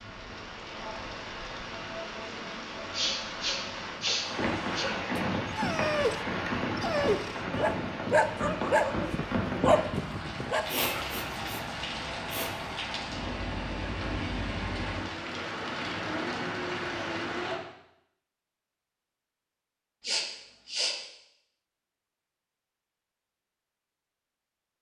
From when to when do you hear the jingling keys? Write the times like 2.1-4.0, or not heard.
not heard.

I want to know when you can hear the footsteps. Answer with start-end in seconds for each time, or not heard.
not heard.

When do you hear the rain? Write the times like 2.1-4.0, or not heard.
0.0-17.6.